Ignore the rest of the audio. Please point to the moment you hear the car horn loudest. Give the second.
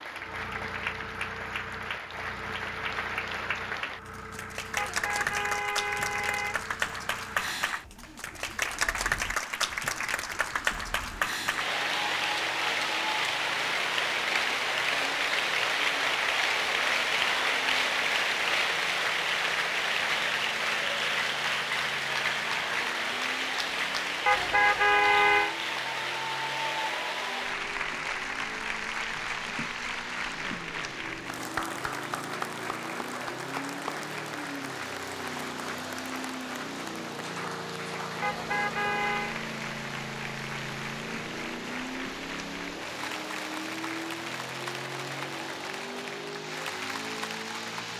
25 s.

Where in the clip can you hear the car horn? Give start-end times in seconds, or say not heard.
4.8-6.7, 24.2-25.6, 38.2-39.4.